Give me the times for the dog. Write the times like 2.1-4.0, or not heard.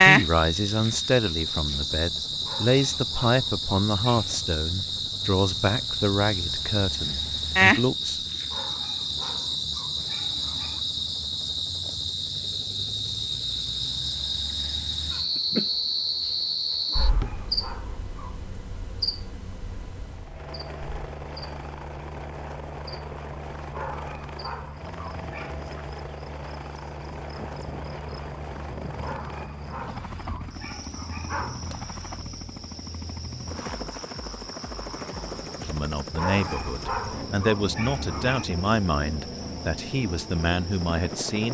2.5-4.3, 8.5-10.8, 16.9-18.4, 23.7-25.7, 29.0-31.6, 36.1-38.5.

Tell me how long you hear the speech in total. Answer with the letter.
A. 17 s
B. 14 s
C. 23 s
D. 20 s
B.